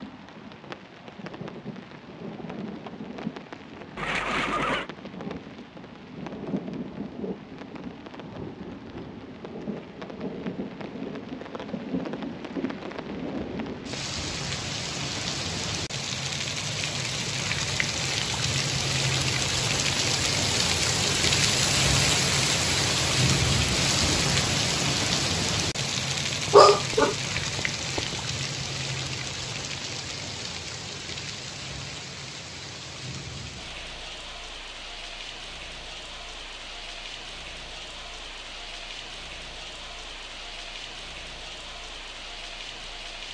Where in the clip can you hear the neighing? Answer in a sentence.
The neighing can be heard from 4.0 to 4.9 s.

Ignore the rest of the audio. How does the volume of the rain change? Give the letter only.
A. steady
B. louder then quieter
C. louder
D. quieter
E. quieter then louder
B.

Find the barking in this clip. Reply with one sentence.
The barking can be heard from 26.5 to 28.1 s.